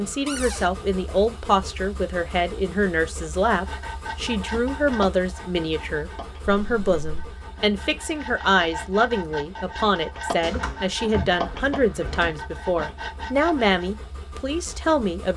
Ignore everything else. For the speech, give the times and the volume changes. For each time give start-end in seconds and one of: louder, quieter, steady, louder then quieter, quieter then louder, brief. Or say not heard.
0.0-15.3 steady.